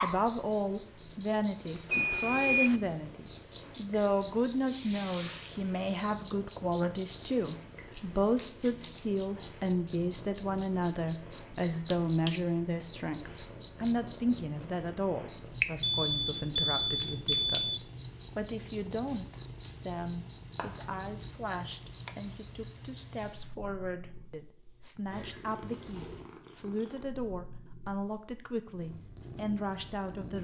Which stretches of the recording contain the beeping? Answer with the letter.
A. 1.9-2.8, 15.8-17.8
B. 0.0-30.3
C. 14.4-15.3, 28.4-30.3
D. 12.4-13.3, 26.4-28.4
A.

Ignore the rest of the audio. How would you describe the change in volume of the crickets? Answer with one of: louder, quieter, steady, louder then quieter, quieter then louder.
steady.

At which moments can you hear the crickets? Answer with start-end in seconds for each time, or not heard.
0.0-22.9.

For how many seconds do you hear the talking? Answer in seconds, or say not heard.
30 s.